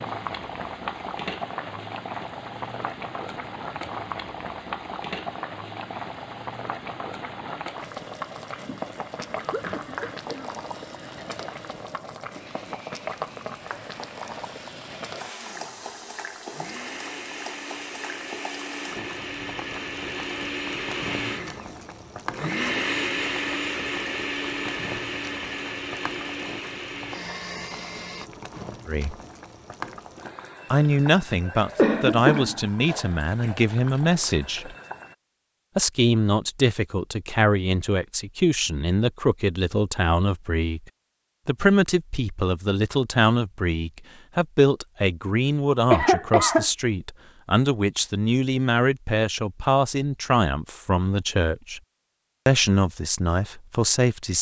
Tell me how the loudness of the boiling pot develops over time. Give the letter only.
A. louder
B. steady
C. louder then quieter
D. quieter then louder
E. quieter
E.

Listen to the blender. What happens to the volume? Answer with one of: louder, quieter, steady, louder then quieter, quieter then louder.
louder.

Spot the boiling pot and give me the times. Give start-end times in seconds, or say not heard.
0.0-35.1.